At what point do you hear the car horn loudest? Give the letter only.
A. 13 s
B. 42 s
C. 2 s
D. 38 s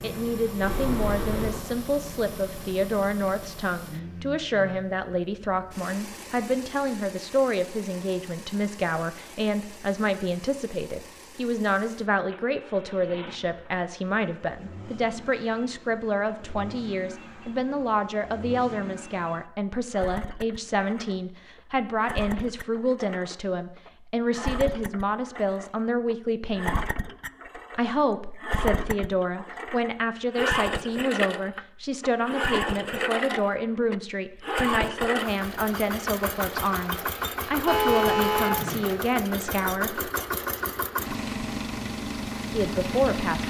D.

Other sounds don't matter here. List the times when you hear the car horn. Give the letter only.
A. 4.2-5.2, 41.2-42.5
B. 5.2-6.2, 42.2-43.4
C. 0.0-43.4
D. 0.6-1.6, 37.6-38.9
D.